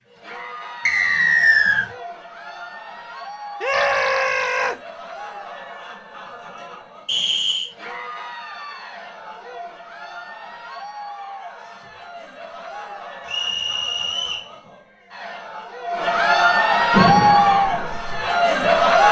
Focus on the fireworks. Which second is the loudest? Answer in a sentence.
The volume of the fireworks peaks at 17 seconds.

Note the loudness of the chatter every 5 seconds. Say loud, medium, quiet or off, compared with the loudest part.
quiet, quiet, quiet, loud.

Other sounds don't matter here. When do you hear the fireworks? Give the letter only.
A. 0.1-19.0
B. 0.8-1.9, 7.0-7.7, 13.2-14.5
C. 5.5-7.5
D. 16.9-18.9
D.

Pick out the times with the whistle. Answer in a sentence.
The whistle can be heard from 0.8 to 1.9 s, from 7.0 to 7.7 s and from 13.2 to 14.5 s.